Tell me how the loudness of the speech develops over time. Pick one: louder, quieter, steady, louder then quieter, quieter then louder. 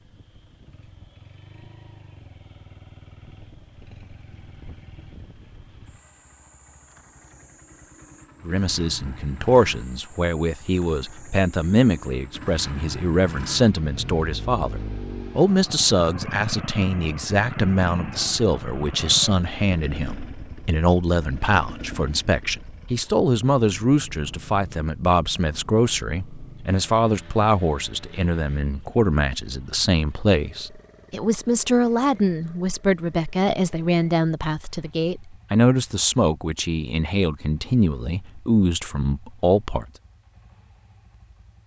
steady.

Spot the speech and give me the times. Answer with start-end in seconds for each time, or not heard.
8.4-39.9.